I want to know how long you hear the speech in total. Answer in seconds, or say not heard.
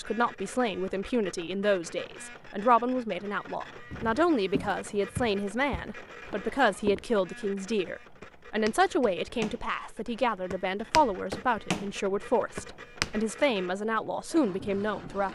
15 s.